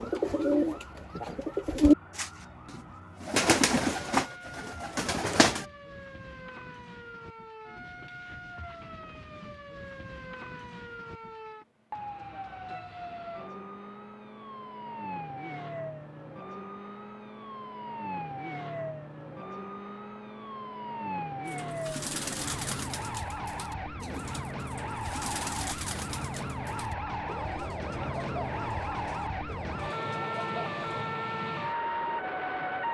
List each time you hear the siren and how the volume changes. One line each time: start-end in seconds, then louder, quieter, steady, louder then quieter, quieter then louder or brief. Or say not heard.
0.0-32.8 louder.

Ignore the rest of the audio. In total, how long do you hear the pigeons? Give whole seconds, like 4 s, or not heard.
15 s.